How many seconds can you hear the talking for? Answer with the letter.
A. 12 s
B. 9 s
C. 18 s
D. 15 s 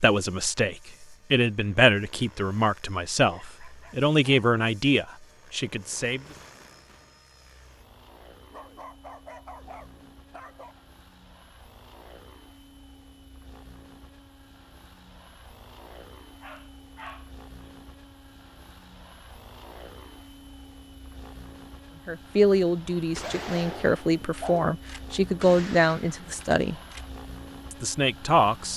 A.